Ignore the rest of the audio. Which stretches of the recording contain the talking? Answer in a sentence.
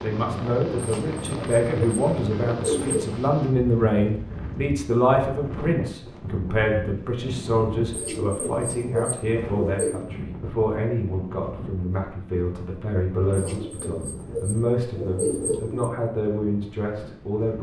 The talking can be heard from 0.0 to 17.5 s.